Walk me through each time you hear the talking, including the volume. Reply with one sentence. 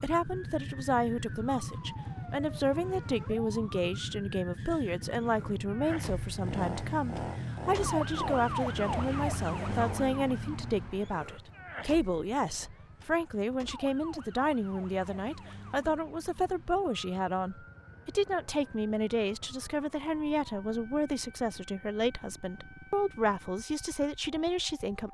You can hear the talking from 0.0 to 25.0 s, at a steady volume.